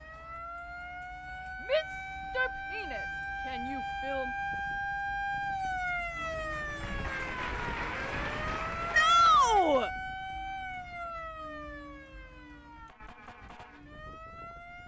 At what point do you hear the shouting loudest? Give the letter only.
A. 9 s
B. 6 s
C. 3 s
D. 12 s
A.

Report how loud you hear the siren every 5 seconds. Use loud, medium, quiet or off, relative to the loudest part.
loud, loud, medium.